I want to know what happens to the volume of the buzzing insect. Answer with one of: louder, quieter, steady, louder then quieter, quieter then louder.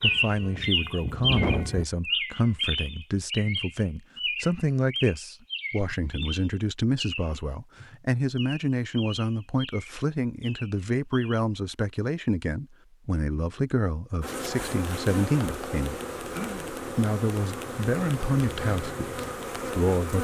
steady.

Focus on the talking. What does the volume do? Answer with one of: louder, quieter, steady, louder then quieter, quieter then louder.
steady.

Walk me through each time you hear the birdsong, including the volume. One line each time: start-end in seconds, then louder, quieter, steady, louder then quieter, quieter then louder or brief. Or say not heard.
0.0-11.4 quieter.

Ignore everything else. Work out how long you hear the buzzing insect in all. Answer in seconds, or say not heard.
6 s.